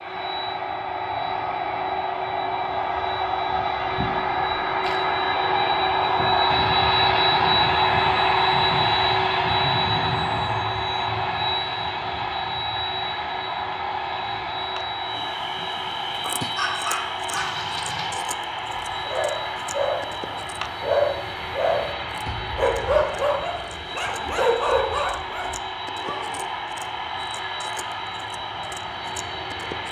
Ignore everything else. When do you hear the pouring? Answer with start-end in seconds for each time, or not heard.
3.8-5.0, 17.4-18.1.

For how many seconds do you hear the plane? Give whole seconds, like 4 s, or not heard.
30 s.